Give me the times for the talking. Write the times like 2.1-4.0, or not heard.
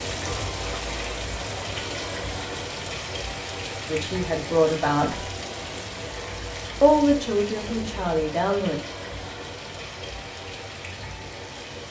3.9-5.3, 6.8-8.8.